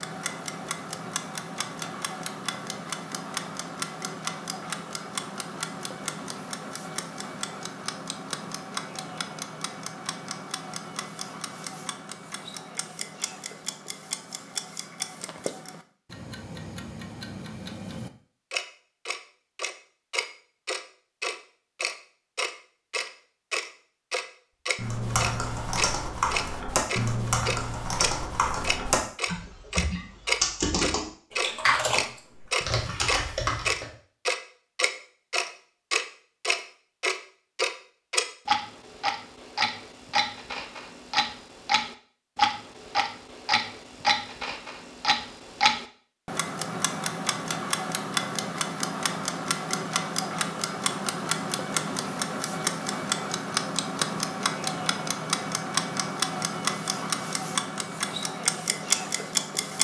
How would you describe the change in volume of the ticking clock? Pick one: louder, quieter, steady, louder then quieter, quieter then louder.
louder.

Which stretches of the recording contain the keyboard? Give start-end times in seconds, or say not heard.
24.8-33.9.